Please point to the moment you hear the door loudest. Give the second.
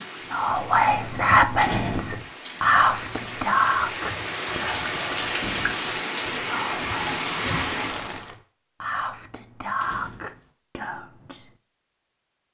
2 s.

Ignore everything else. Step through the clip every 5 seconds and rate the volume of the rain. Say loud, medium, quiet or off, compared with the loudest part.
medium, loud, off.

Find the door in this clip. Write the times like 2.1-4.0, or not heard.
1.6-2.3, 5.3-6.0, 9.8-10.5.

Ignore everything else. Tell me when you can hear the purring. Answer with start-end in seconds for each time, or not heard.
not heard.